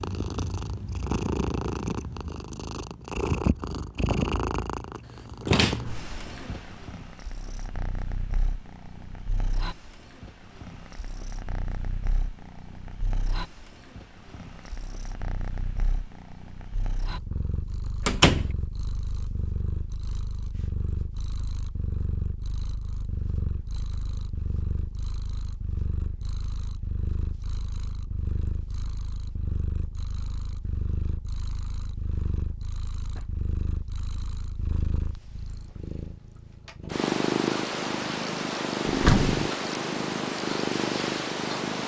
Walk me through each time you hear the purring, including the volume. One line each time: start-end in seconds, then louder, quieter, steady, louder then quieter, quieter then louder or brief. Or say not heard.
0.0-41.8 quieter then louder.